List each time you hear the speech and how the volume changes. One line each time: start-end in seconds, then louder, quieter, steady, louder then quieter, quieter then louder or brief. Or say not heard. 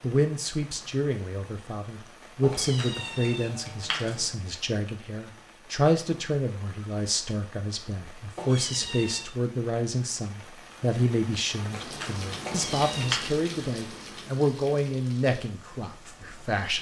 0.0-16.7 steady.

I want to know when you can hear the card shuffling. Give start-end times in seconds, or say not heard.
2.5-4.3, 11.7-13.3.